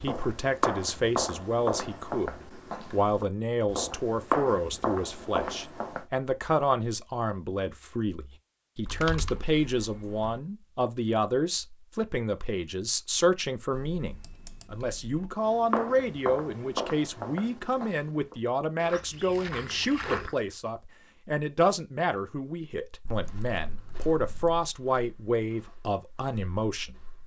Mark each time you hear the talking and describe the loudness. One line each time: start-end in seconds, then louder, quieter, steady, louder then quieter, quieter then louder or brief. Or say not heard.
0.0-27.1 steady.